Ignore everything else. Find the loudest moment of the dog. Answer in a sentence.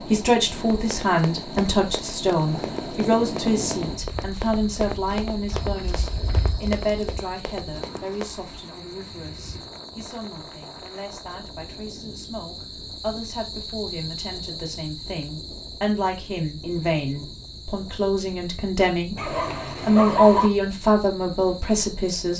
The volume of the dog peaks at 20 seconds.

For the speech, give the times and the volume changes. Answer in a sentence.
The speech can be heard from 0.1 to 22.3 s, getting quieter then louder.